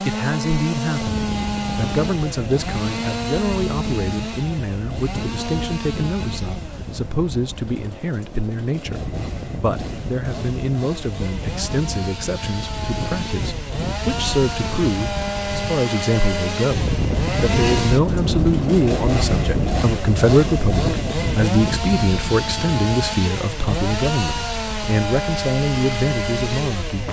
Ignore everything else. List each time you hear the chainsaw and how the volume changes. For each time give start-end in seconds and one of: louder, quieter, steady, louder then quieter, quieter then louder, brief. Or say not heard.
0.0-27.0 quieter then louder.